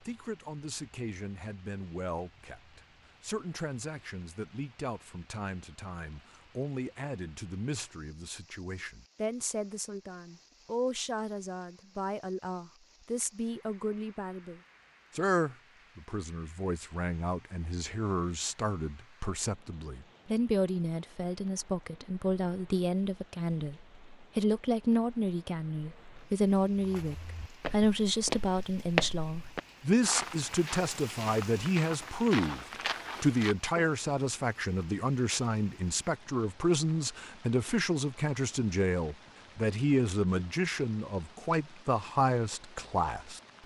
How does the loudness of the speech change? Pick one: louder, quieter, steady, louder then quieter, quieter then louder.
louder.